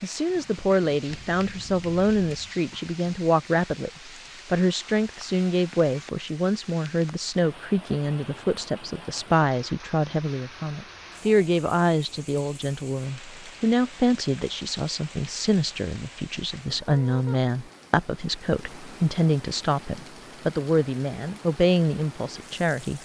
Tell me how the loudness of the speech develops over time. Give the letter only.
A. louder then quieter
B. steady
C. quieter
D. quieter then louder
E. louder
B.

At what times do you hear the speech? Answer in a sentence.
The speech can be heard from 0.0 to 23.0 s.